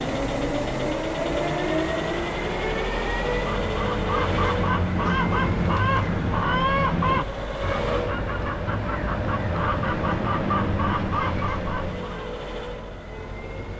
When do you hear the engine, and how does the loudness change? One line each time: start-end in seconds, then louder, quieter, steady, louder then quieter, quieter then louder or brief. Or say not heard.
0.0-13.7 quieter.